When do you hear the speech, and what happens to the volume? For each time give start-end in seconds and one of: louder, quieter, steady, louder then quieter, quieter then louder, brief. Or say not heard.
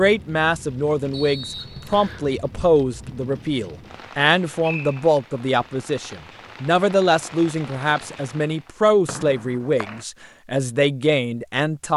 0.0-11.9 steady.